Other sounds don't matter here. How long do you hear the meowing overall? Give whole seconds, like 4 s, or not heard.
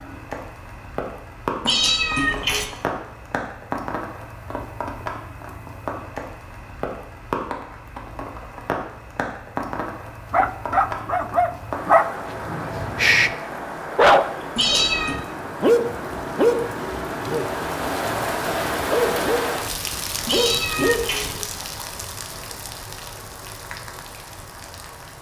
3 s.